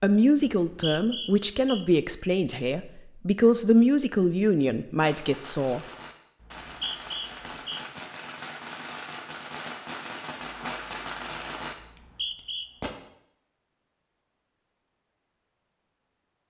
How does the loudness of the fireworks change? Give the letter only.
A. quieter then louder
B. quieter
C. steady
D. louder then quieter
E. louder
E.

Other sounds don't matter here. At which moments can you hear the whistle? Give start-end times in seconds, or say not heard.
0.6-1.9, 6.4-7.8, 11.8-12.7.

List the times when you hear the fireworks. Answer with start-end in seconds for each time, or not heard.
5.0-12.9.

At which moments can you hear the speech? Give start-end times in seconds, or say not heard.
0.0-5.8.